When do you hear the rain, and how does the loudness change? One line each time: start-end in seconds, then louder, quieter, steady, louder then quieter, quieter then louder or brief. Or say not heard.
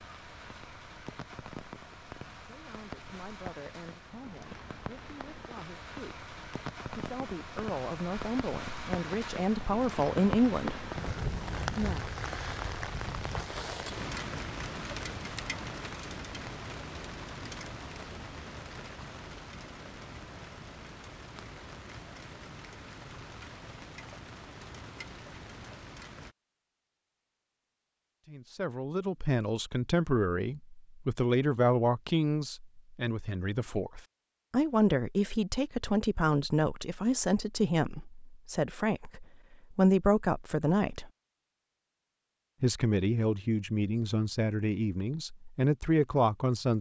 0.0-26.4 louder then quieter.